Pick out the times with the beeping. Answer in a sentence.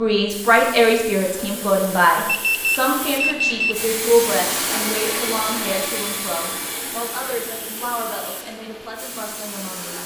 You can hear the beeping from 2.2 to 3.8 s.